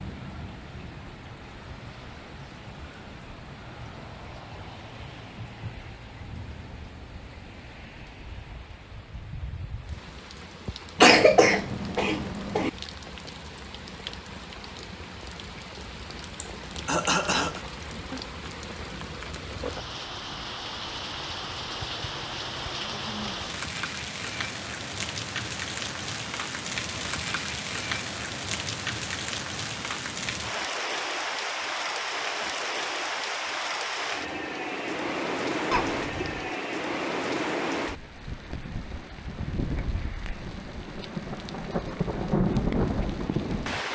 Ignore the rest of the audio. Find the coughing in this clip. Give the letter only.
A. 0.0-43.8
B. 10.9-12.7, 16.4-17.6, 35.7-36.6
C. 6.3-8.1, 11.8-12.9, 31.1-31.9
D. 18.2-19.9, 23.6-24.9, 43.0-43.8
B.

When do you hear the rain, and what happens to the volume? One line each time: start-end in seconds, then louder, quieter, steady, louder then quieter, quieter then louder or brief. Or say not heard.
0.0-43.8 louder.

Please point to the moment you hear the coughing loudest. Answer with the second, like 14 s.
11 s.